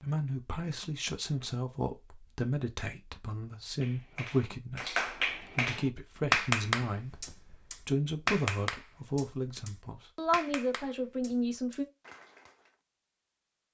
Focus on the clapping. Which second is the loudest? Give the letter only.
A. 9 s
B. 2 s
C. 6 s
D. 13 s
C.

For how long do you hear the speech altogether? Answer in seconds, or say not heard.
12 s.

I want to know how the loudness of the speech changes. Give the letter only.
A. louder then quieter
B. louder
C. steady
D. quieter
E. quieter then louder
C.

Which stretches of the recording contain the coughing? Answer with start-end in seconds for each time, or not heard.
not heard.